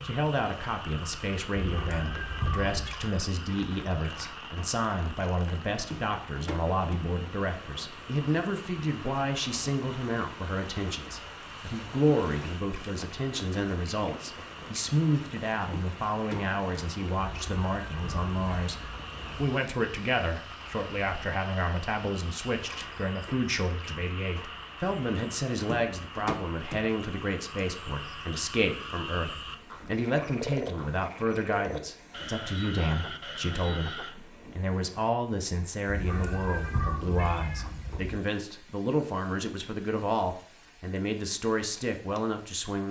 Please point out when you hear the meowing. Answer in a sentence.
You can hear the meowing from 1.6 to 3.0 s, from 17.1 to 19.3 s and from 35.9 to 38.2 s.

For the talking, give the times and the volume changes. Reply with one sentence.
The talking can be heard from 0.0 to 42.8 s, at a steady volume.